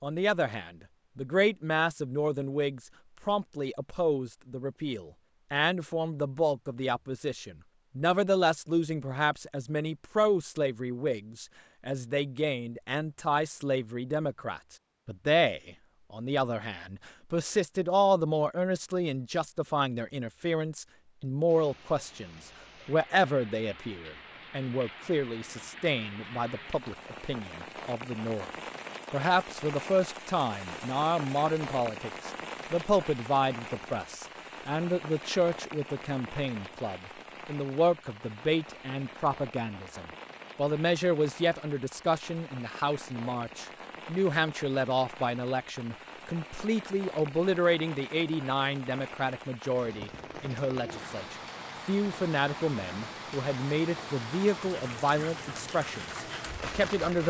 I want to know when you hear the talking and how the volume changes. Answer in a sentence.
You can hear the talking from 0.0 to 28.4 s, at a steady volume; and from 29.1 to 57.2 s, at a steady volume.